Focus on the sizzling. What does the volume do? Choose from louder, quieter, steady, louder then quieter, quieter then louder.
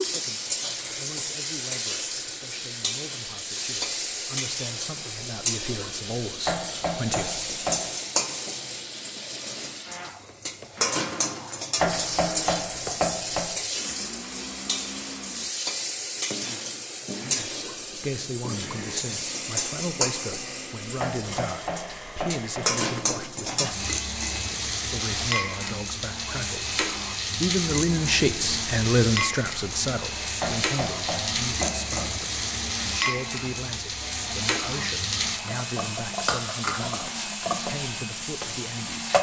steady.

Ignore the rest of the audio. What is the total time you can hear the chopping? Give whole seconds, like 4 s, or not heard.
7 s.